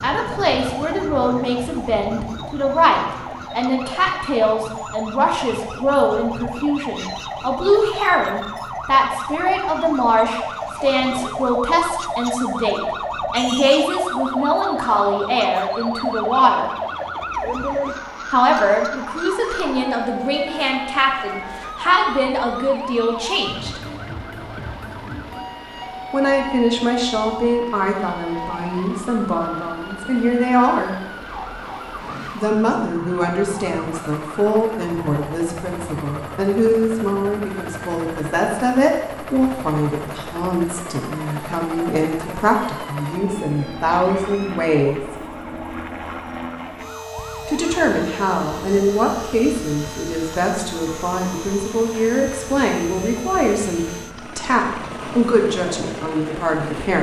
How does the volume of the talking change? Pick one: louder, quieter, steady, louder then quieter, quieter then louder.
steady.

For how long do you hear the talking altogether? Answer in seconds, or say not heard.
49 s.